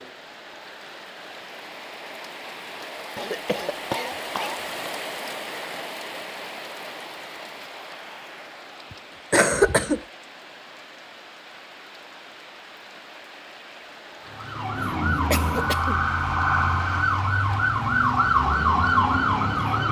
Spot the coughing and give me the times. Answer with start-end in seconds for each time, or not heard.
3.1-4.8, 8.9-10.0, 15.3-16.1.